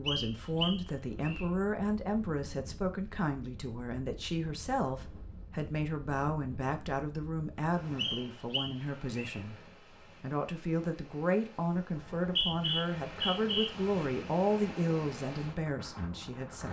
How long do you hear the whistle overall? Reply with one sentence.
The whistle can be heard for 5 seconds in total.